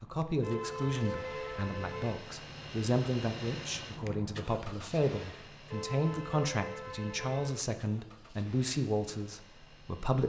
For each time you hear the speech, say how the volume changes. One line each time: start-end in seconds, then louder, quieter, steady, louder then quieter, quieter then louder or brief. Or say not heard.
0.0-10.2 steady.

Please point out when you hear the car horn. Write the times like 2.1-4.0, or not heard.
0.4-2.2, 5.7-7.6.